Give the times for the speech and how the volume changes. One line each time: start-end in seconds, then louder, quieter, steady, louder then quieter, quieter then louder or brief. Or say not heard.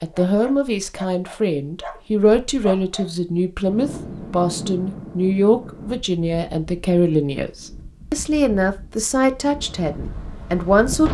0.0-11.0 steady.